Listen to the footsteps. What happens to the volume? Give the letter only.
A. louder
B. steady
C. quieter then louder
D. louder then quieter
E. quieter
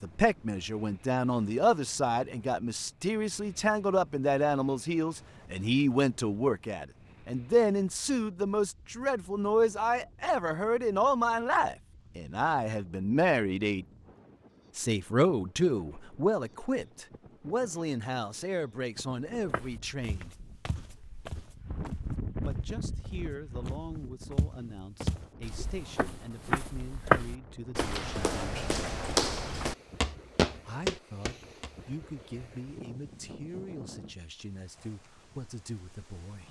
C.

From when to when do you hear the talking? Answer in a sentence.
The talking can be heard from 0.0 to 13.8 s, from 14.8 to 20.4 s, from 22.4 to 28.6 s and from 30.6 to 36.4 s.